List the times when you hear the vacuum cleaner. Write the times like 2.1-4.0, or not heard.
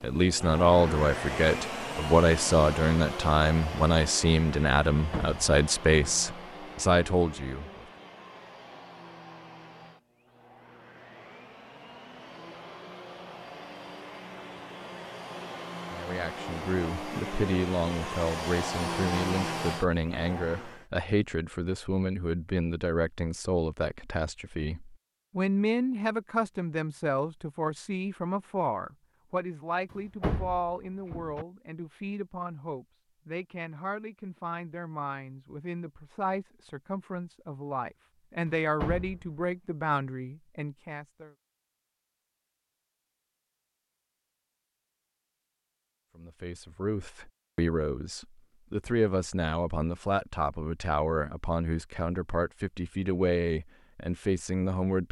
0.0-20.9.